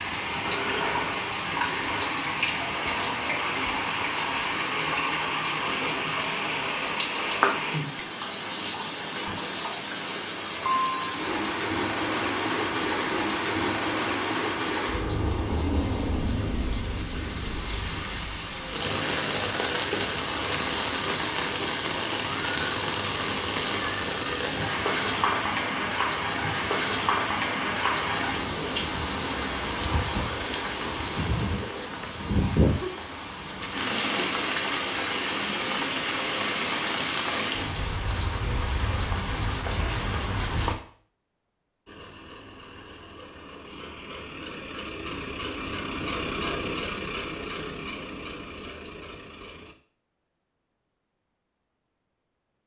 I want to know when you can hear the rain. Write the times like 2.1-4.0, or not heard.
0.0-40.8.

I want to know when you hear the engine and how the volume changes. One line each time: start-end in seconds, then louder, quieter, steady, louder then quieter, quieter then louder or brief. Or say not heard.
0.0-2.1 brief
41.9-49.8 louder then quieter.